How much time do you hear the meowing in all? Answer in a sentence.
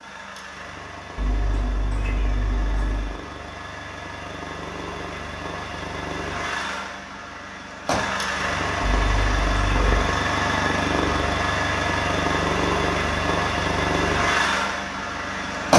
The meowing can be heard for 3 seconds in total.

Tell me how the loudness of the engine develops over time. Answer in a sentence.
The loudness of the engine goes up.